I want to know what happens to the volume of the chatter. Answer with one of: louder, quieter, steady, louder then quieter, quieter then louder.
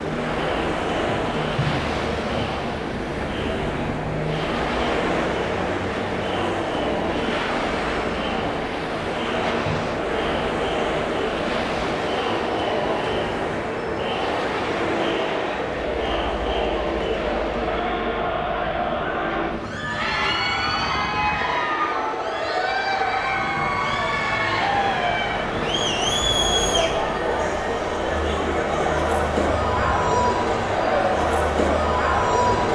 louder.